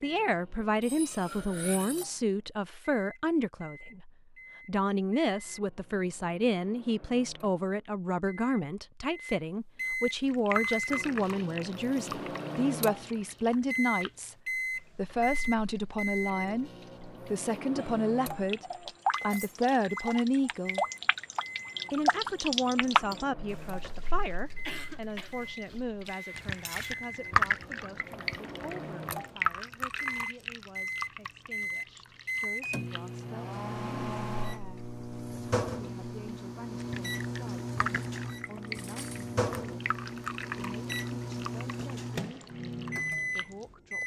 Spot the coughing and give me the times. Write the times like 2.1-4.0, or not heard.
24.6-25.8.